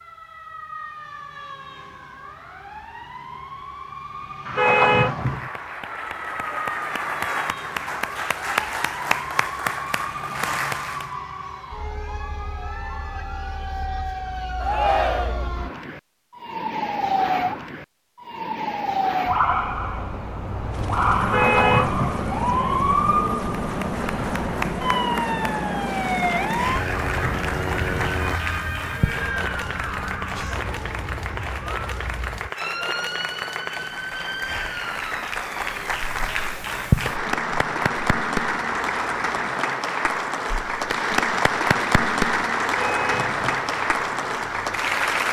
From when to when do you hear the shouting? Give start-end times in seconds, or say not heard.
14.6-15.5.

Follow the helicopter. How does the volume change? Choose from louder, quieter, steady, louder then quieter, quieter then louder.
steady.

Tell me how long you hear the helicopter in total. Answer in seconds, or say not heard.
8 s.